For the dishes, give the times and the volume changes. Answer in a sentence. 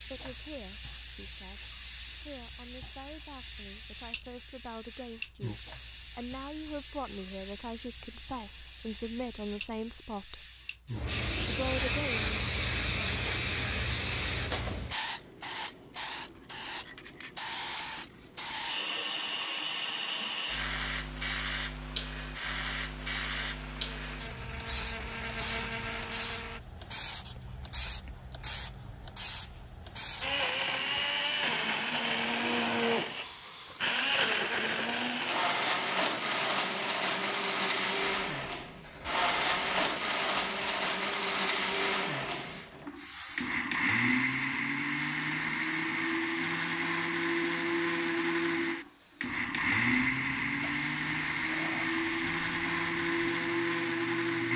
The dishes can't be heard in this clip.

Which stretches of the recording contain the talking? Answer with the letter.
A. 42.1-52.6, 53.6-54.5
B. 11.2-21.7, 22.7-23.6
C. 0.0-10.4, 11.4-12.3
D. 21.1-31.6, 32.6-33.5
C.